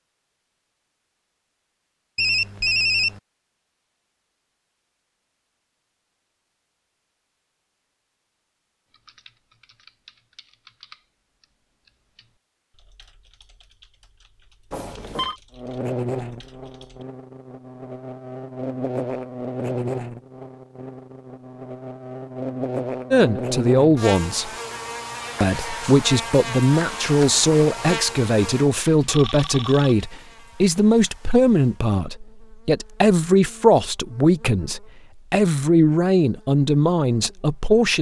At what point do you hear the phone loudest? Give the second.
3 s.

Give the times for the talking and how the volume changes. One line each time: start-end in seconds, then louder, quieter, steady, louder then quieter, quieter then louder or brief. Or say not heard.
23.1-24.5 brief
25.4-37.9 steady.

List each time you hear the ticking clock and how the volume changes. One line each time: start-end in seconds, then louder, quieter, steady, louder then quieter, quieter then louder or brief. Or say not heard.
not heard.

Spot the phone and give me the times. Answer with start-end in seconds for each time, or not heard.
2.1-3.2, 14.7-15.3, 28.8-29.9.